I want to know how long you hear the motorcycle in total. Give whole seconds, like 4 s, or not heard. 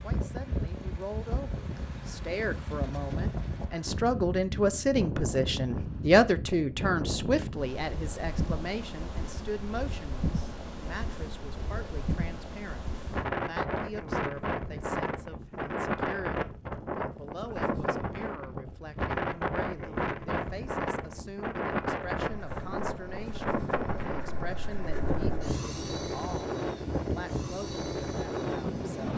7 s.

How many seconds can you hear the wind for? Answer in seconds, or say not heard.
29 s.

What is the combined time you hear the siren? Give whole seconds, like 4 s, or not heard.
not heard.